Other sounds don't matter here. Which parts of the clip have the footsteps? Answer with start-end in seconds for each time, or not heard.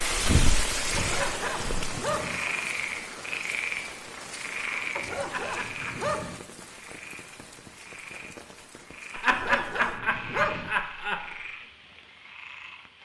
0.0-2.0.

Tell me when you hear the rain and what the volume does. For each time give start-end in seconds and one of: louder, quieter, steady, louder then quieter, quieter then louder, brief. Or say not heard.
0.0-13.0 quieter.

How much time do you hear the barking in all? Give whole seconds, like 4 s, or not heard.
4 s.